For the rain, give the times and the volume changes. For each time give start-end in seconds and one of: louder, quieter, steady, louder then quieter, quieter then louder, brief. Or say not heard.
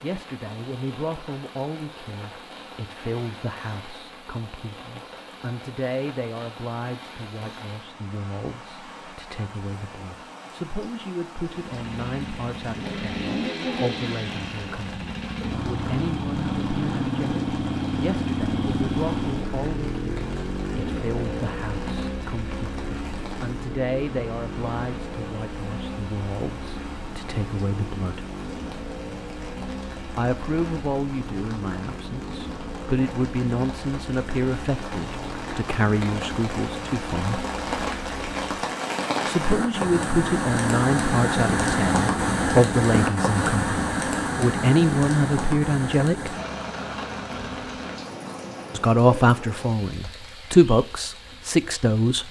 0.0-52.2 louder.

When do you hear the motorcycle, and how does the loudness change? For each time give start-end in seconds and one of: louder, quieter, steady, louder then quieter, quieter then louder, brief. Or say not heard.
11.5-38.5 quieter.